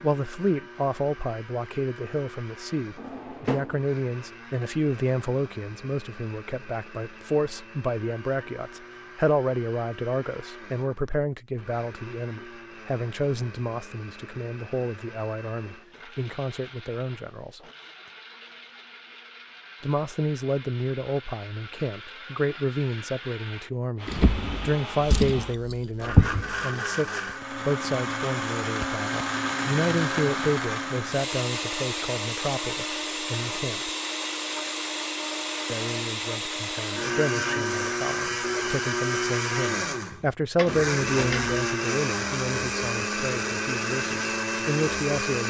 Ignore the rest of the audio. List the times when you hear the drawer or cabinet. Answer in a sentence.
The drawer or cabinet can be heard from 3.0 to 3.9 s, from 24.1 to 26.5 s and from 40.5 to 41.5 s.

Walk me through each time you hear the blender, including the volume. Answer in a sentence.
The blender can be heard from 0.0 to 45.4 s, getting louder.